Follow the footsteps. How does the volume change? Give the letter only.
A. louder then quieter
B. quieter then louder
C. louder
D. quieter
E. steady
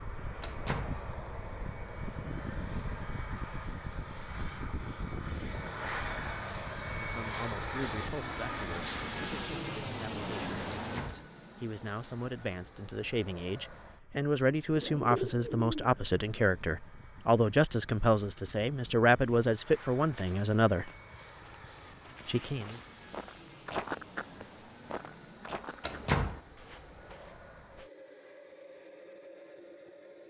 A.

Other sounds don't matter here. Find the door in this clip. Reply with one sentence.
You can hear the door from 0.4 to 1.0 s, from 10.8 to 11.2 s and from 25.8 to 26.4 s.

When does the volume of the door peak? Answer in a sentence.
The volume of the door peaks at 26 seconds.